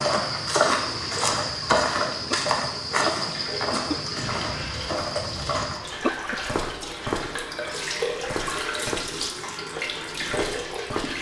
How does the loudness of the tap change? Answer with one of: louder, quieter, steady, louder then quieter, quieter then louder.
louder.